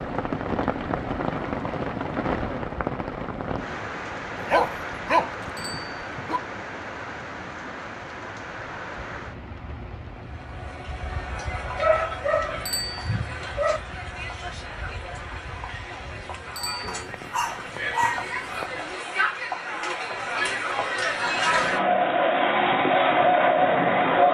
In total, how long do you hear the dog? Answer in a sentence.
The dog can be heard for 6 seconds in total.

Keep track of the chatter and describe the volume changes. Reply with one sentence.
The volume of the chatter goes up.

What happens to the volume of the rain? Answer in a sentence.
The volume of the rain goes down.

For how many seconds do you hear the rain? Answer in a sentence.
You can hear the rain for 19 seconds altogether.